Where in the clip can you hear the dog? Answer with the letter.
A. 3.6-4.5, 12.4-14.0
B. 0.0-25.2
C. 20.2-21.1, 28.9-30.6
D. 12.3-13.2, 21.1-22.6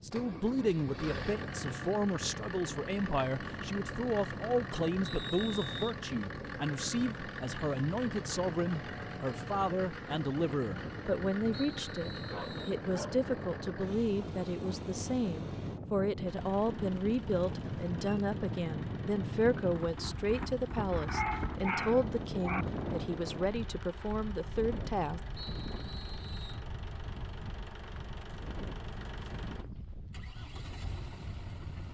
D.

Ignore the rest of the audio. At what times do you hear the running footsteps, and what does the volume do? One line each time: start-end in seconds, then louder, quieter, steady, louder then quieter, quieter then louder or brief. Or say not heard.
not heard.